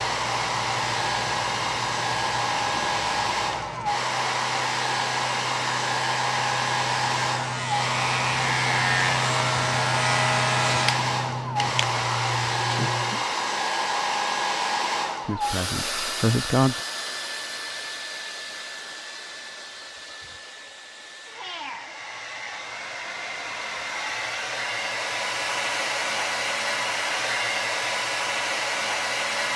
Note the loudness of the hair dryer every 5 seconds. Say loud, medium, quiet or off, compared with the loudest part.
loud, loud, loud, medium, medium, loud.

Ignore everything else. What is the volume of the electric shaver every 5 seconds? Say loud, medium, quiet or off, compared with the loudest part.
medium, loud, loud, off, off, off.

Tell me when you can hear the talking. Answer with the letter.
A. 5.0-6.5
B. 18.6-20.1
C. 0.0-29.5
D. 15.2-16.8
D.